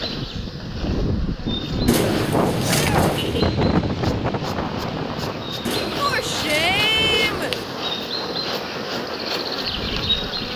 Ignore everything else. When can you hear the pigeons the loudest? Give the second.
2 s.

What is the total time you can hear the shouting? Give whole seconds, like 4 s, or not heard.
2 s.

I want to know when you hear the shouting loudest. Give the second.
7 s.